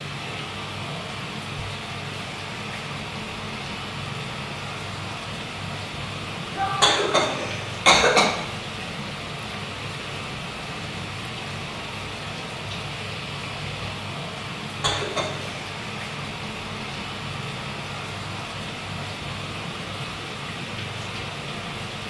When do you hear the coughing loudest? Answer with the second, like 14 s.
8 s.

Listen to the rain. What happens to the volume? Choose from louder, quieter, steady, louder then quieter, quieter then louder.
steady.